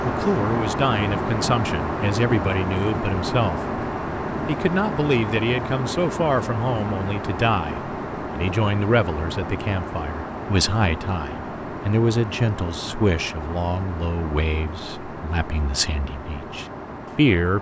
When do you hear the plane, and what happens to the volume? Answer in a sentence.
You can hear the plane from 0.0 to 17.5 s, getting quieter.